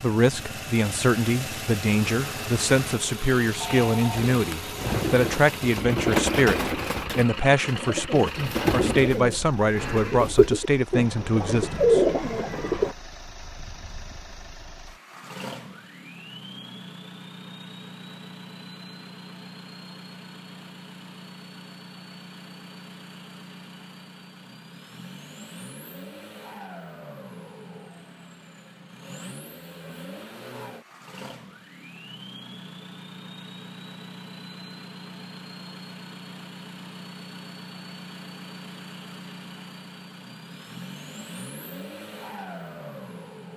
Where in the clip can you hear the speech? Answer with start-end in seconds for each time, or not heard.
0.0-12.0.